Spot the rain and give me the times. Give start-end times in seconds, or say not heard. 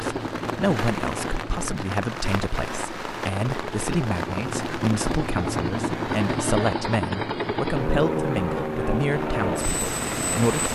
0.0-10.7.